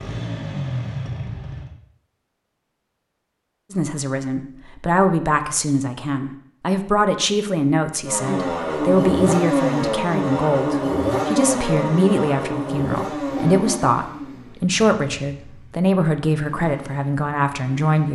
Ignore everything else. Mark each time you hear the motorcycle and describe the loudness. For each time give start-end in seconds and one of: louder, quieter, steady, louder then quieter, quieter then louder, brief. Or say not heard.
0.0-1.7 brief
8.1-18.1 quieter.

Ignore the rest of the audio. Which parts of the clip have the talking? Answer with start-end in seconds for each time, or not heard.
3.7-18.1.